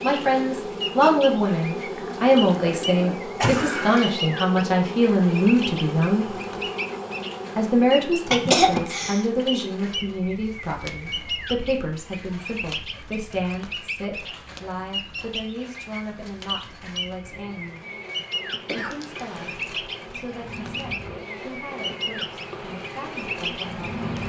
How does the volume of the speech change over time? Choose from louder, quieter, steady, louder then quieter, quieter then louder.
quieter.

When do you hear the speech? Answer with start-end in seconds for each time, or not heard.
0.0-6.3, 7.5-17.8, 18.7-24.0.